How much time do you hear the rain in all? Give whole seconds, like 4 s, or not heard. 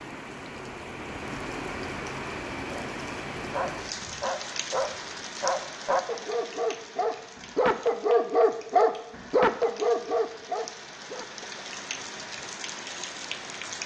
14 s.